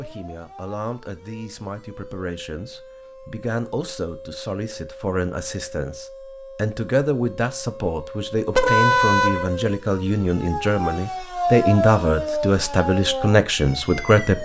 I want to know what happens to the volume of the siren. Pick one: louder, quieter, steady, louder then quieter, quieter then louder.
louder.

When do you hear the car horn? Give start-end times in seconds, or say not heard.
8.5-9.4.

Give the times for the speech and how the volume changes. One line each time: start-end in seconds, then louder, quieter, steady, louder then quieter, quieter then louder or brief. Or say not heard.
0.0-14.4 louder.